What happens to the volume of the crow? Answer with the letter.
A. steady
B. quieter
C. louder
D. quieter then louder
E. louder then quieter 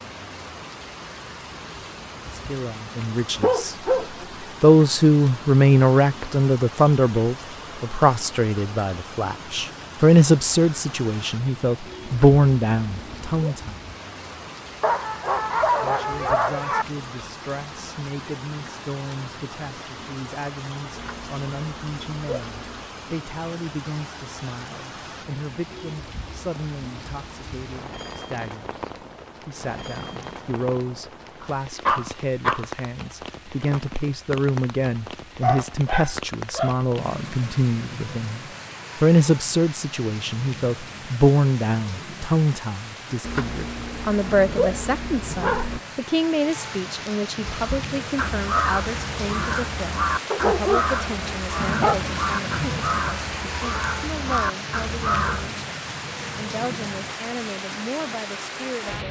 A.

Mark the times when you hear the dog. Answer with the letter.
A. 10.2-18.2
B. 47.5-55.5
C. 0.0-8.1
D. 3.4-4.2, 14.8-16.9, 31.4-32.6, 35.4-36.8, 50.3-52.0
D.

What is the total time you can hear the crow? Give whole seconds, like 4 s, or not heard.
8 s.